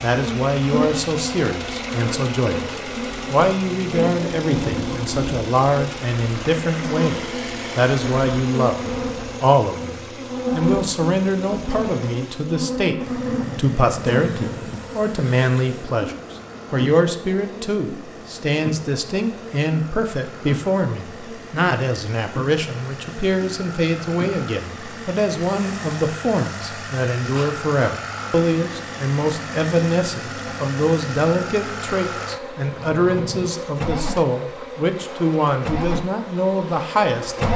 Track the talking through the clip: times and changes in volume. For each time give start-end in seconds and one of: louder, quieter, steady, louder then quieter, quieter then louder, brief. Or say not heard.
0.0-37.4 steady.